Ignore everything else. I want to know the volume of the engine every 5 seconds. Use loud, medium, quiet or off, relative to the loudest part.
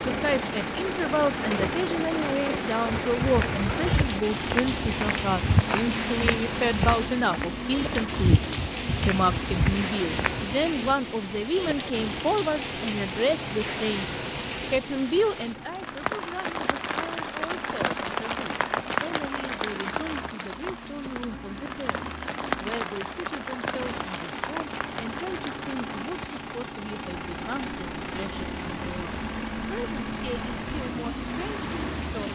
loud, loud, medium, medium, medium, loud, loud.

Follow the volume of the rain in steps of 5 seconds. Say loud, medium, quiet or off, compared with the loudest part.
loud, loud, loud, loud, loud, medium, medium.